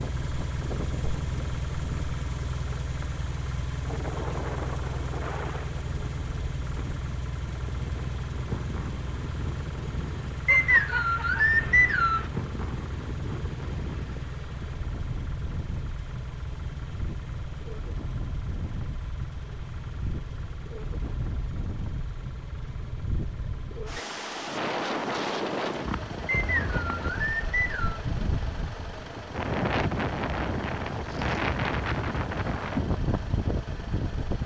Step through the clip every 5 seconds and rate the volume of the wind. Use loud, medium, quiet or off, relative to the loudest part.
medium, medium, medium, medium, medium, loud, loud.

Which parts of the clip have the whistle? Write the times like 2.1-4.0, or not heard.
10.4-12.3, 26.2-28.0.